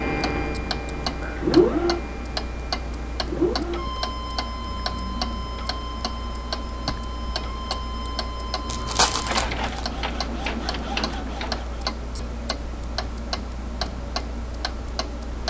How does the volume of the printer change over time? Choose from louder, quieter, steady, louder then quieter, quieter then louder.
quieter then louder.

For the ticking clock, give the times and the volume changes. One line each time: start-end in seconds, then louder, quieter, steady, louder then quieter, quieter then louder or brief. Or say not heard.
0.0-15.4 steady.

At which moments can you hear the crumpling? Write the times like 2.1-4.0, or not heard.
8.7-9.8.